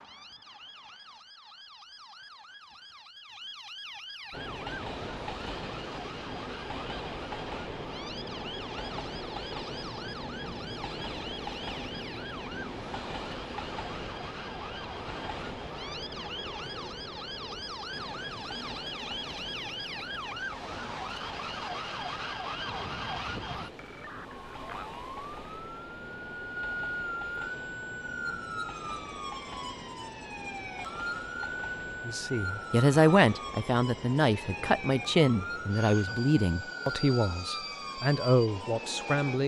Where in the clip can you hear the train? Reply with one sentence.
You can hear the train from 4.3 to 39.4 s.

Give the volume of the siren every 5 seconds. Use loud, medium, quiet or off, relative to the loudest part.
medium, medium, medium, loud, loud, loud, loud, loud.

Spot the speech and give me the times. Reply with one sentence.
You can hear the speech from 32.0 to 39.4 s.